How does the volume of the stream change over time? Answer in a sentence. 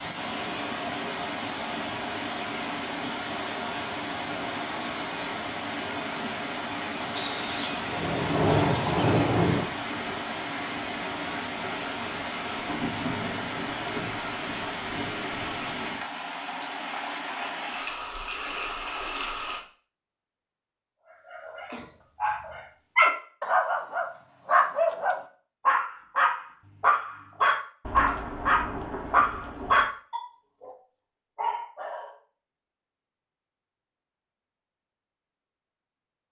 The volume of the stream stays about the same.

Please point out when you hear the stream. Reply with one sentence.
You can hear the stream from 0.0 to 19.6 s.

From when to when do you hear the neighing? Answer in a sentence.
The neighing can't be heard in this clip.